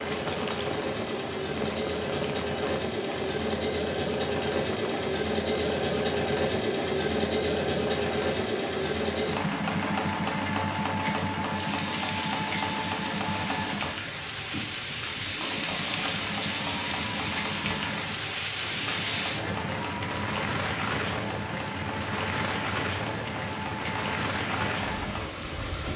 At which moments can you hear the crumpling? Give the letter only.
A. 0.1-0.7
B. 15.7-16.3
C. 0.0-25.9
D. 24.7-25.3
A.